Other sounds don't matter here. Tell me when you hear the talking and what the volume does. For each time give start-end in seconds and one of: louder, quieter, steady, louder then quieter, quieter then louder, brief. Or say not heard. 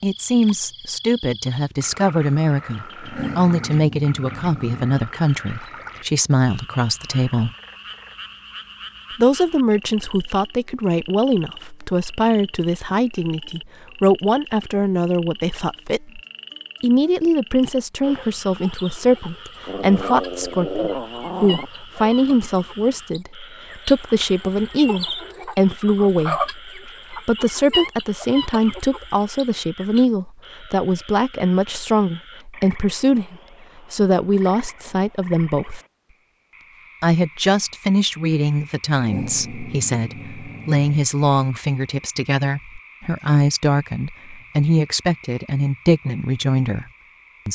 0.0-7.5 steady
9.2-16.2 steady
16.8-35.8 steady
37.0-46.9 steady.